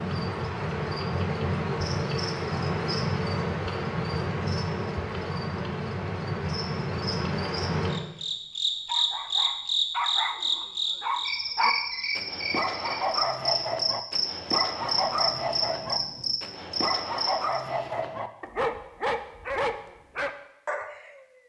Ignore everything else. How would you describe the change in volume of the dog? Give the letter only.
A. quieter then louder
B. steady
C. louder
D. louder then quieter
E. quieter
B.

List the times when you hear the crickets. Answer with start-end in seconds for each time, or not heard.
0.0-17.6.